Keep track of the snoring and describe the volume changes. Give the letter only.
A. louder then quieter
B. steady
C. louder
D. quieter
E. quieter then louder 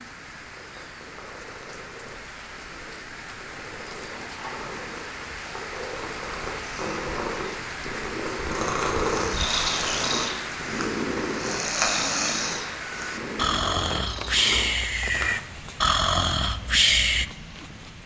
C.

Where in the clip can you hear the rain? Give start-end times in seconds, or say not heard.
0.0-18.0.